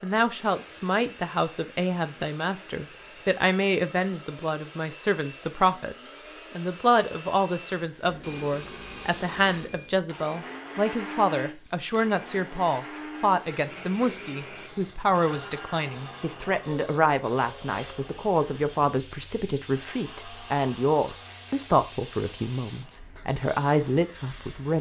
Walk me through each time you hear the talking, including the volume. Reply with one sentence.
The talking can be heard from 0.0 to 24.7 s, at a steady volume.